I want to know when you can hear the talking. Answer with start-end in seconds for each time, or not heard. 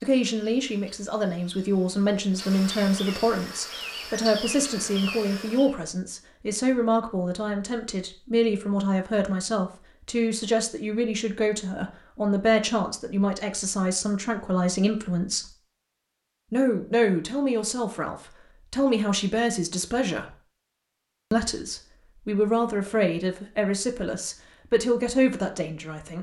0.0-15.5, 16.5-20.4, 21.3-26.1.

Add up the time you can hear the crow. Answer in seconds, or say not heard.
not heard.